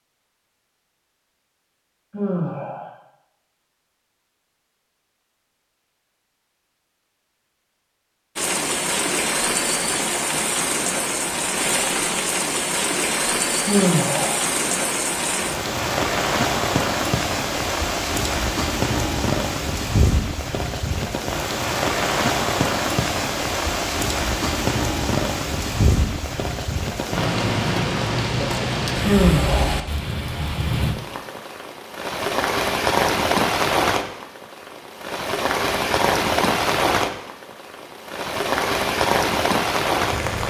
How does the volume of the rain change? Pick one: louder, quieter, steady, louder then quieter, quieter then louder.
steady.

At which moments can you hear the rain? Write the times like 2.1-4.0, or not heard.
8.3-40.4.